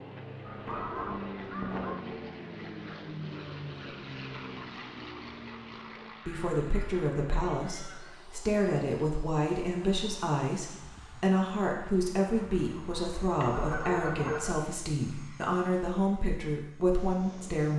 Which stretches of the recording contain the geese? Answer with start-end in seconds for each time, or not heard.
0.5-2.0, 6.2-8.2, 12.3-14.6.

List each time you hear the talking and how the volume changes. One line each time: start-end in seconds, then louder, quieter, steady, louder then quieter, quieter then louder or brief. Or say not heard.
6.2-17.7 steady.